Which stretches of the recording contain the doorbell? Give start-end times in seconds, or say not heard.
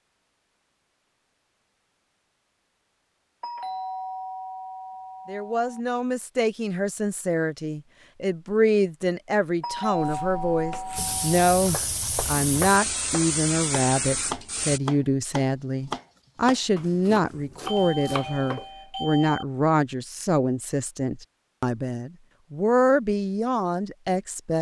3.4-5.8, 9.6-11.3, 17.6-19.4.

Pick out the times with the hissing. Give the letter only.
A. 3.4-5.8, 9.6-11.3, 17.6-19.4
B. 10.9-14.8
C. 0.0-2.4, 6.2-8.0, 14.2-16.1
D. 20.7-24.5
B.